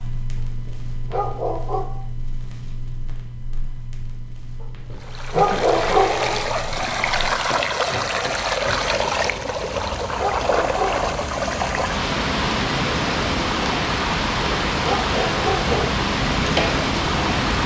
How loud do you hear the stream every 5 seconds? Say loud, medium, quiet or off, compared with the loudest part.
off, loud, loud, loud.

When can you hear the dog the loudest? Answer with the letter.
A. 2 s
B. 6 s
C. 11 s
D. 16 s
B.